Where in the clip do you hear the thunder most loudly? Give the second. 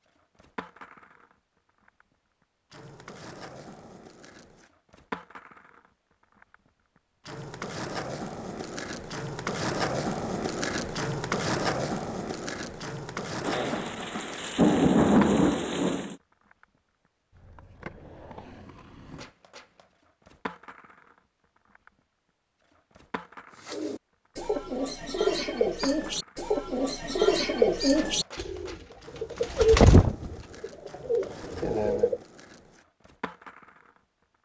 15 s.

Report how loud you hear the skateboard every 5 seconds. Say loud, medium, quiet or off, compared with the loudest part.
quiet, loud, loud, medium, quiet, quiet, quiet.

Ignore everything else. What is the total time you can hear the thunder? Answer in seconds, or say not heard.
3 s.